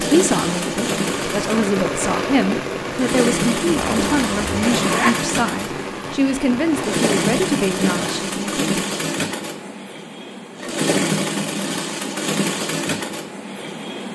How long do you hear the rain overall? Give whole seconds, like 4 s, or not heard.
8 s.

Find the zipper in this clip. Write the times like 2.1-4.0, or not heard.
3.6-5.2.